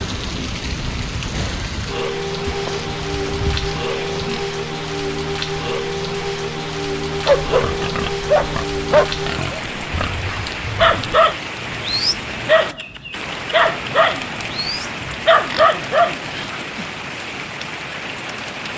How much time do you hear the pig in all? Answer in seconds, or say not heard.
6 s.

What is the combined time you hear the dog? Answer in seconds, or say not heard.
9 s.